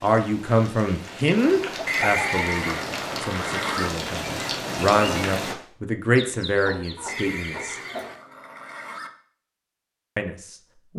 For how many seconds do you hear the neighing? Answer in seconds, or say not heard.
4 s.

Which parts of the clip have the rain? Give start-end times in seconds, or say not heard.
0.0-5.5.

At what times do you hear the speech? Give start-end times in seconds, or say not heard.
0.0-7.8, 10.2-10.9.